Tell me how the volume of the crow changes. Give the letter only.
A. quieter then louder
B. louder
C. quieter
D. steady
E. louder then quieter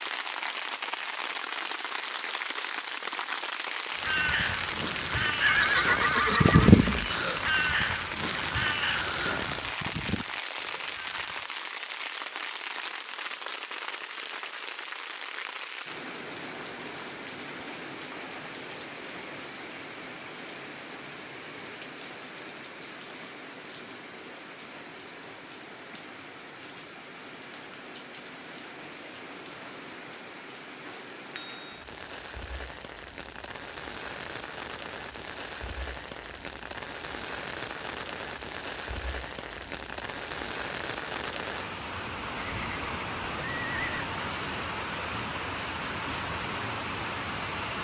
E.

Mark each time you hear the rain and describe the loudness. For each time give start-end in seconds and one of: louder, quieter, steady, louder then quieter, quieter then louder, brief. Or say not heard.
0.0-47.7 quieter then louder.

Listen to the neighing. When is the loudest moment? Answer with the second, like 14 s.
6 s.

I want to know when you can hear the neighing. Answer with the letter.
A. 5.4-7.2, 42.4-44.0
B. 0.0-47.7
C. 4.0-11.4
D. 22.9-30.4
A.